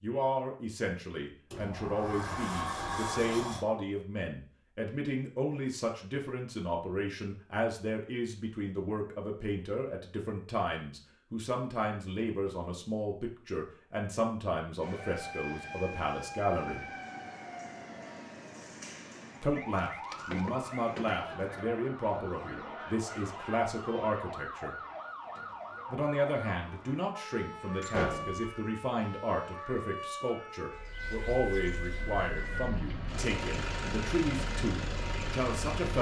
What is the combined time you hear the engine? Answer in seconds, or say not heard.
4 s.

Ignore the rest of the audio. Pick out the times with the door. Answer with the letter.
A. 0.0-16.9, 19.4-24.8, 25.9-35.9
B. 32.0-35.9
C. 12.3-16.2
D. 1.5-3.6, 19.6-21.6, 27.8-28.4
D.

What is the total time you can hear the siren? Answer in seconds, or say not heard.
21 s.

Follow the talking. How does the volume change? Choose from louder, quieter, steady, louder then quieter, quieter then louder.
steady.